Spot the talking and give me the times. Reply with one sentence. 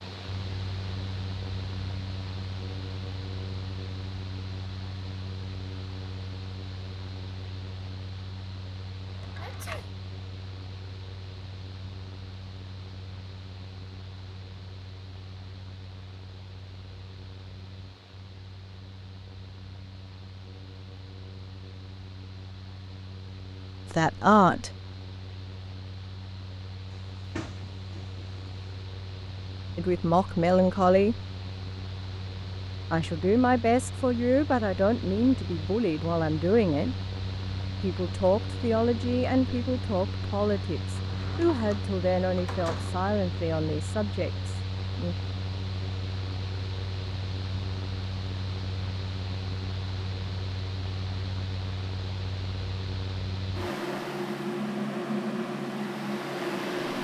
The talking can be heard from 23.9 to 24.7 s, from 29.8 to 31.2 s, from 32.9 to 37.0 s and from 37.8 to 45.1 s.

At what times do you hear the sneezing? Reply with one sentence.
The sneezing can be heard from 9.3 to 9.9 s.